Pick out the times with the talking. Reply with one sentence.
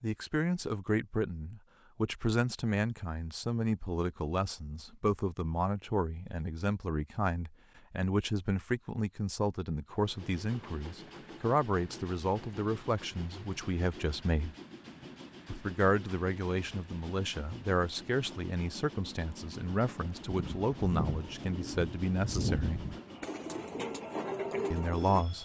You can hear the talking from 0.0 to 14.6 s, from 15.4 to 22.8 s and from 24.7 to 25.3 s.